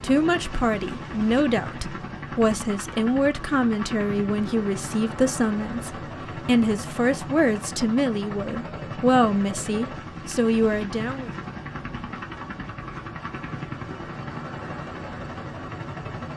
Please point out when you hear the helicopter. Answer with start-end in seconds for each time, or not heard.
0.0-16.3.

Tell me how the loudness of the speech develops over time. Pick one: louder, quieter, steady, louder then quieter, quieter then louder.
steady.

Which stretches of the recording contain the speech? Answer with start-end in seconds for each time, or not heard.
0.0-11.3.